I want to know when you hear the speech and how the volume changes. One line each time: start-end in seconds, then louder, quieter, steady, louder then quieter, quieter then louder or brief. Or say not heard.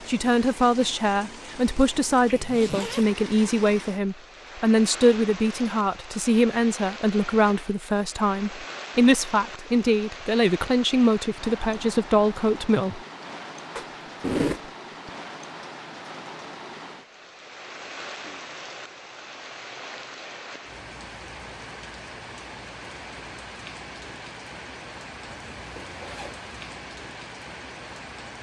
0.1-13.0 steady.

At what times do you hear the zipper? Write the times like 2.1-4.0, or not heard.
2.2-3.0, 13.8-15.1, 25.3-26.6.